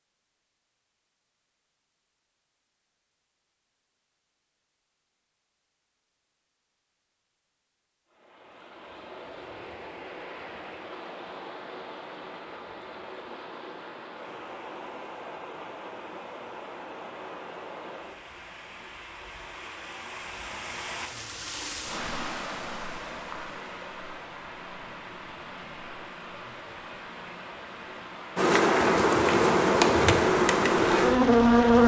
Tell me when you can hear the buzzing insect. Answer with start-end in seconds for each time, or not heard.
28.4-31.8.